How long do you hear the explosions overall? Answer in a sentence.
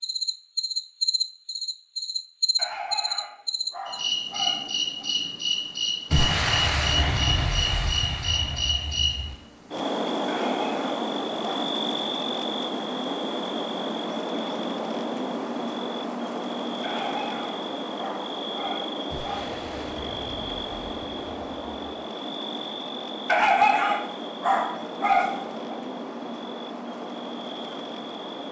You can hear the explosions for 6 seconds altogether.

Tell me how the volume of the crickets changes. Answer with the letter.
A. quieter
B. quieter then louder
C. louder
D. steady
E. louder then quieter
A.